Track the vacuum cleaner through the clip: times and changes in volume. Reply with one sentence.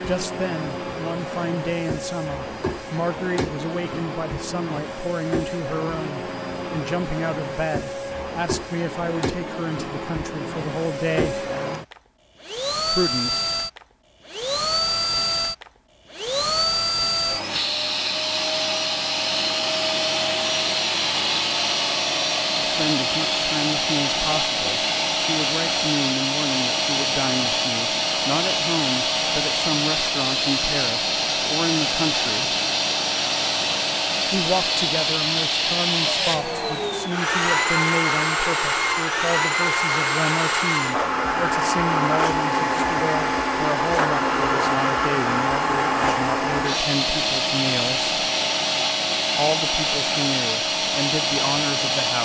The vacuum cleaner can be heard from 0.0 to 52.1 s, getting louder.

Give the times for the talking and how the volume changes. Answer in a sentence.
You can hear the talking from 0.1 to 11.4 s, at a steady volume; briefly from 12.8 to 13.4 s; from 22.6 to 32.5 s, at a steady volume; from 34.3 to 48.1 s, at a steady volume; and briefly from 49.4 to 52.1 s.